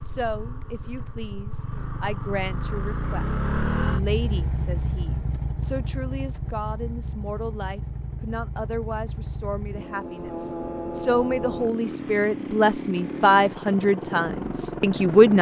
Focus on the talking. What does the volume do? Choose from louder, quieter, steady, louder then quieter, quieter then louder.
louder.